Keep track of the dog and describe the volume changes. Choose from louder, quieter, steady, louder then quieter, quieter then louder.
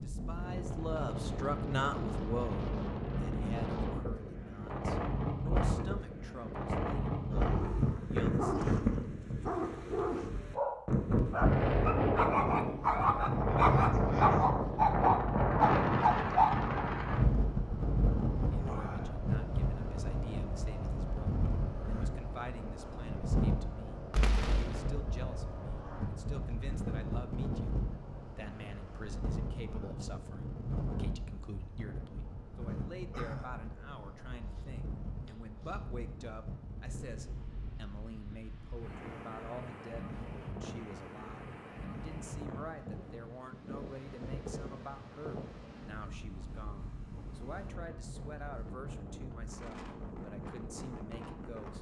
louder.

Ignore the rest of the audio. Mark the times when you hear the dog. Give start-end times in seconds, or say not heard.
7.3-16.9.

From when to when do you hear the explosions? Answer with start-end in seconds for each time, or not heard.
24.1-24.9.